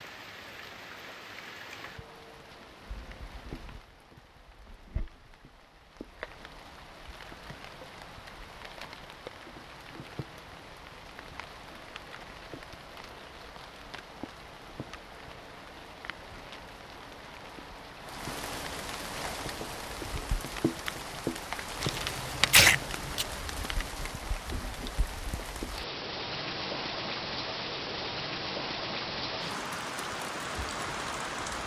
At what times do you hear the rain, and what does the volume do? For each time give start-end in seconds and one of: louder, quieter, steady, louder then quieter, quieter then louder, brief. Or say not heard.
0.0-31.6 louder.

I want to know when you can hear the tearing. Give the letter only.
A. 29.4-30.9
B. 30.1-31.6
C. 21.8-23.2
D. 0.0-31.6
C.